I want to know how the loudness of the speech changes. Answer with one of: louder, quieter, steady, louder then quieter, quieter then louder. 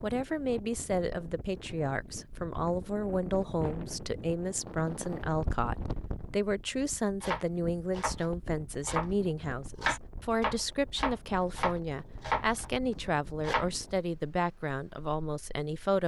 steady.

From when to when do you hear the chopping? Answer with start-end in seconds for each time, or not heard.
7.2-13.7.